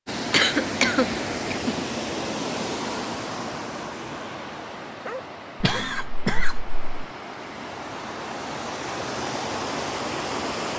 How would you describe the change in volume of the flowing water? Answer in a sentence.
The volume of the flowing water goes down, then up.